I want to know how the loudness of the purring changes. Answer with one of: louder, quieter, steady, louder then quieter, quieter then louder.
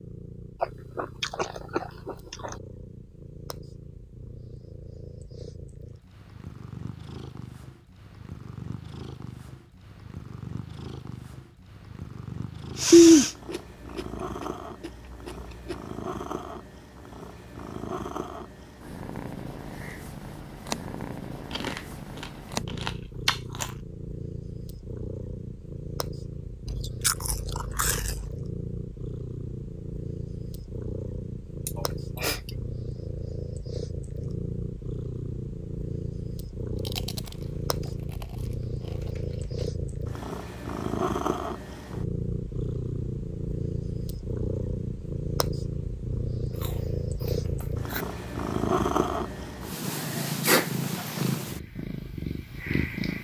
louder.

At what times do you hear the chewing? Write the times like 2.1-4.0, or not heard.
0.6-2.6, 12.9-15.8, 21.5-23.6, 26.6-28.4, 36.9-39.6, 46.5-48.0.